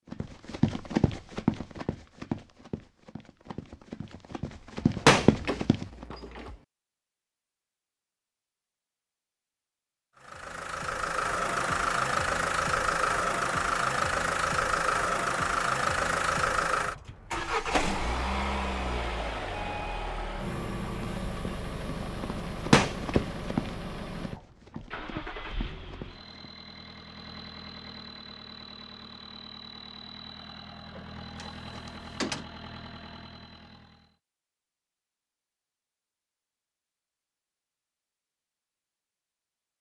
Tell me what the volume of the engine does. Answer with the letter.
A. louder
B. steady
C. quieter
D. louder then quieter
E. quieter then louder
C.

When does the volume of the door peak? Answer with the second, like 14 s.
5 s.